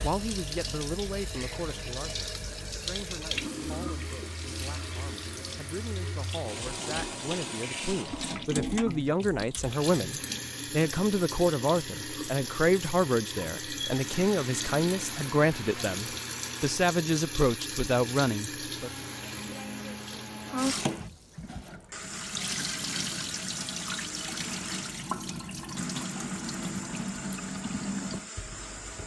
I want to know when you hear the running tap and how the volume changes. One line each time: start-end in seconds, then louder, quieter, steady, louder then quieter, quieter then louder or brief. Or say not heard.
0.0-29.0 steady.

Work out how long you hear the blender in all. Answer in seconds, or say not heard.
13 s.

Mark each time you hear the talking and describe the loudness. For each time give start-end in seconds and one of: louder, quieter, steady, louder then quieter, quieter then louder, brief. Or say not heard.
0.0-19.1 louder.